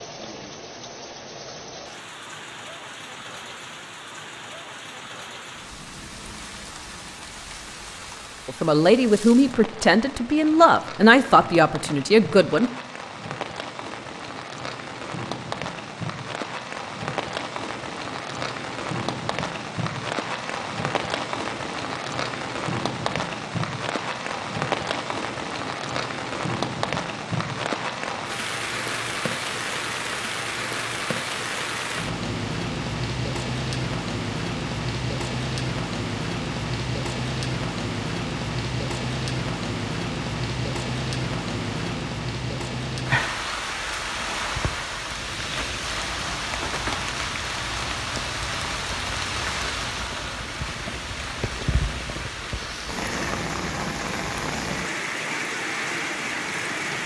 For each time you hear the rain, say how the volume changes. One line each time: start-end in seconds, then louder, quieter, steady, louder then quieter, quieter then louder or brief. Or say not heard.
0.0-57.0 louder.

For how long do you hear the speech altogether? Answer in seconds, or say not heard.
4 s.